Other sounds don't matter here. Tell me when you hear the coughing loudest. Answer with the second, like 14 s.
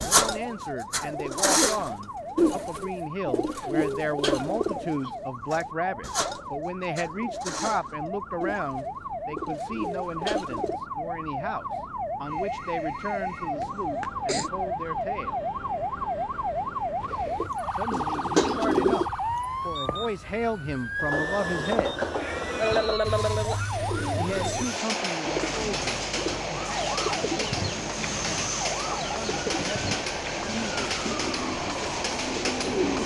23 s.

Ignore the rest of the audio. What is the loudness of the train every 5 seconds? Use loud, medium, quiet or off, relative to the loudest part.
off, off, quiet, quiet, loud, loud, loud.